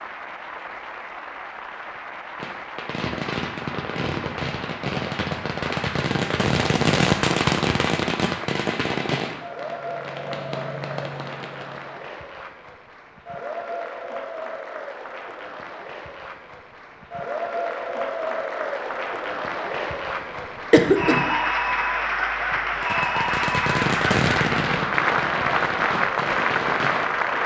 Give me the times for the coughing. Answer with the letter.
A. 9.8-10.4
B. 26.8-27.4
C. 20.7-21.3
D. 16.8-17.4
C.